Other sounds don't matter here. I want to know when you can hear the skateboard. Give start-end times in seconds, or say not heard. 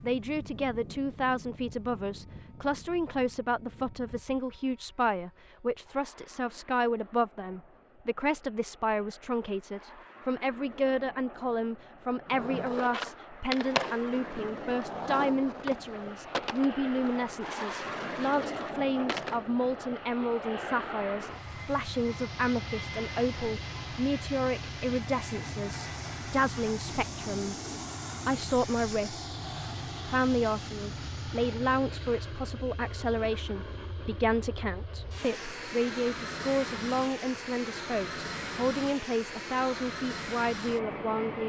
12.2-19.6.